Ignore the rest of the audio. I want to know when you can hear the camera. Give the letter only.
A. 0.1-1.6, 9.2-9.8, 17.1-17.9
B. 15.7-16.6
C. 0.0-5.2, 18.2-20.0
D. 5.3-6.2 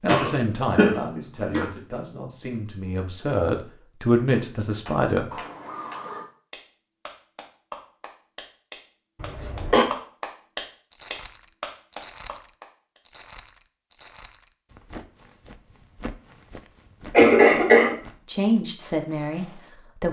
D.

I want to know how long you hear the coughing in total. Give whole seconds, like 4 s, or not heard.
3 s.